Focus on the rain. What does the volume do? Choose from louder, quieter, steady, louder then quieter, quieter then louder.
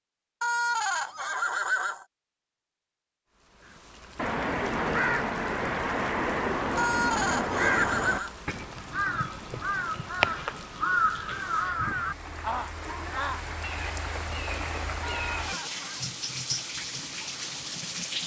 louder.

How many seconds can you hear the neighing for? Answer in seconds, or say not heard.
4 s.